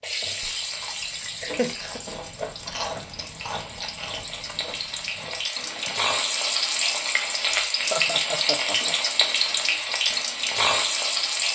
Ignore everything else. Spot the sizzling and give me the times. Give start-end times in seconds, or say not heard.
0.0-11.5.